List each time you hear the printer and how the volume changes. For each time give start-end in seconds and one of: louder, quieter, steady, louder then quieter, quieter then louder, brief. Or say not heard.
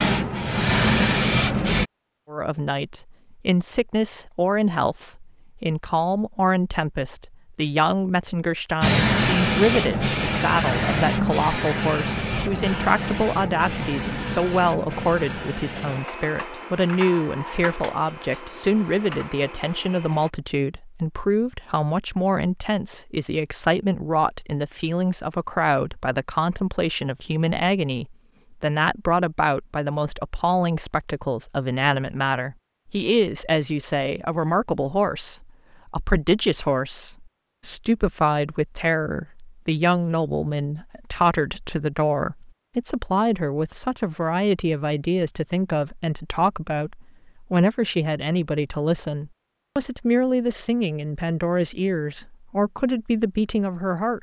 0.0-1.9 brief
8.8-20.3 quieter.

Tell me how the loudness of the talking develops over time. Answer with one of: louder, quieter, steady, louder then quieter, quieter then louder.
steady.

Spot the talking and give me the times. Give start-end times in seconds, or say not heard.
2.3-54.1.